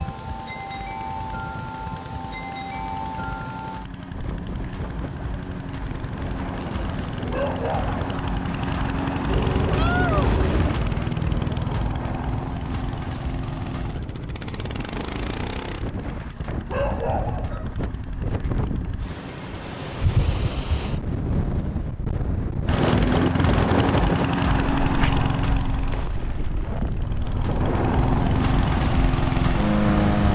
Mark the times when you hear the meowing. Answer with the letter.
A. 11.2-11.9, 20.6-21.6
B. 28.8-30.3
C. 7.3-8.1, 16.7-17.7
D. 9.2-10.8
D.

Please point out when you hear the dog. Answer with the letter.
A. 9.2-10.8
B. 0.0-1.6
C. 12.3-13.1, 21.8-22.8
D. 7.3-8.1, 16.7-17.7
D.